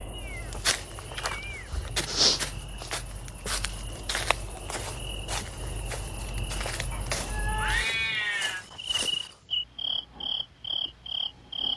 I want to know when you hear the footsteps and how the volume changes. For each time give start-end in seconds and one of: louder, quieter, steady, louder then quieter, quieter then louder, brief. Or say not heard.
0.2-9.3 quieter.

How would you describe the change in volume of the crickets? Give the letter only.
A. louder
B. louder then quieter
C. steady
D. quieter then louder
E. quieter
A.